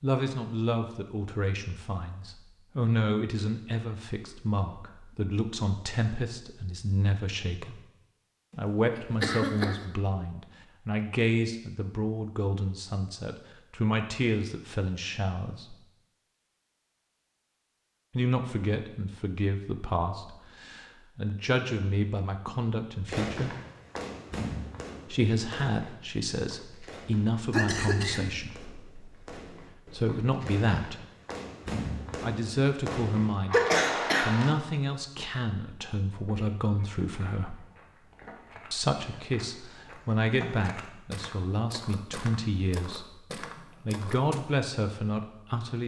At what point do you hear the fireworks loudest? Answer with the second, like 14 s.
34 s.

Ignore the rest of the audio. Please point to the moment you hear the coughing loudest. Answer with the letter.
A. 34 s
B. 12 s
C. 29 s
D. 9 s
A.